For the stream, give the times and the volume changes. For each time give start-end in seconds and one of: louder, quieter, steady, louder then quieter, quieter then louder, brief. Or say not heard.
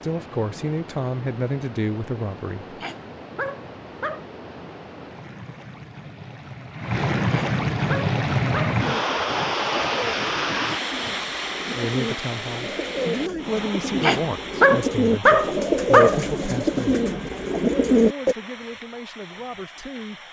0.0-20.2 louder then quieter.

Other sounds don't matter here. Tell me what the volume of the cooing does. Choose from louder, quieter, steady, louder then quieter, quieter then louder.
louder.